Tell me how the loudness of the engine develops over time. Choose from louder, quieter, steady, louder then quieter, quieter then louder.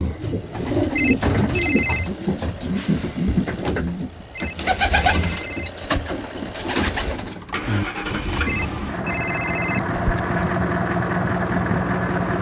louder.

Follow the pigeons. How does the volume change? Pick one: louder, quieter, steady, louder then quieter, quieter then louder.
quieter.